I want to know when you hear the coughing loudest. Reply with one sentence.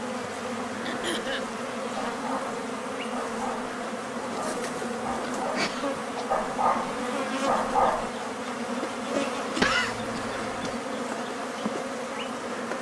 The loudest moment of the coughing is at 10 seconds.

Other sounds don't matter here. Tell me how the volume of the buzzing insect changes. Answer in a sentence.
The loudness of the buzzing insect stays about the same.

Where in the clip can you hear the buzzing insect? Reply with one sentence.
You can hear the buzzing insect from 0.0 to 12.7 s.